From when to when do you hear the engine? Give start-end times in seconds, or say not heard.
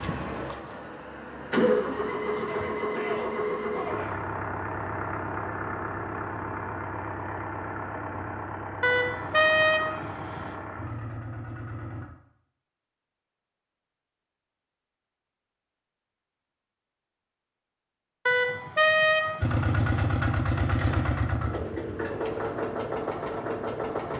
0.0-12.1, 19.4-24.1.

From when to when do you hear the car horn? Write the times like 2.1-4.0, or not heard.
8.8-10.6, 18.2-20.1.